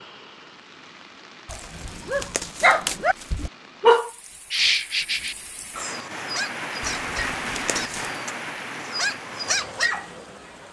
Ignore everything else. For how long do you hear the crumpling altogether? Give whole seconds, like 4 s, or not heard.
3 s.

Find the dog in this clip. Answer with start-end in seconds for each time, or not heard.
1.5-10.1.